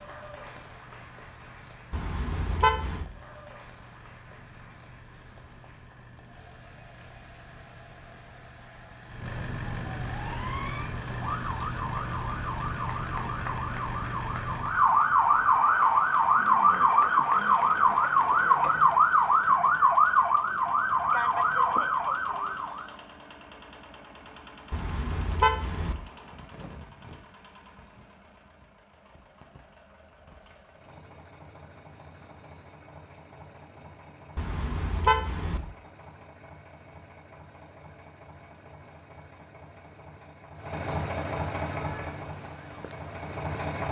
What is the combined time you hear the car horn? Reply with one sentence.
You can hear the car horn for 4 seconds altogether.